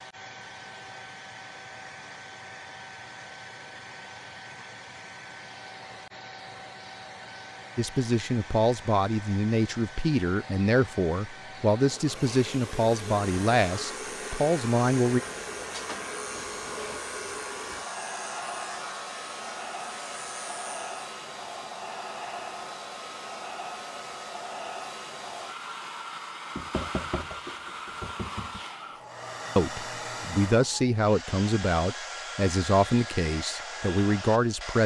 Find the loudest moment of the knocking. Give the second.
27 s.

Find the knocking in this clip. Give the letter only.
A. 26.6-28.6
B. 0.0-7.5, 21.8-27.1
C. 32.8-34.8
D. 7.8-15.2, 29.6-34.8
A.